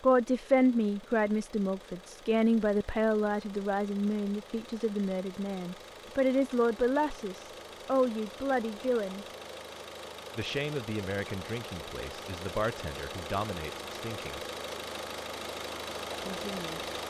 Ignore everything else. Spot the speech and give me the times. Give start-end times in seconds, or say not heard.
0.0-9.2, 10.3-14.4, 16.2-16.8.